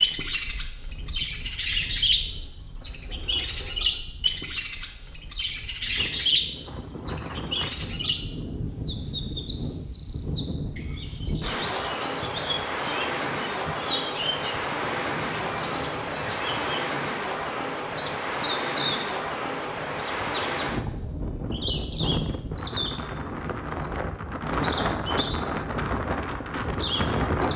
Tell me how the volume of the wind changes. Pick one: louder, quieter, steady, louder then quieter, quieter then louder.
louder.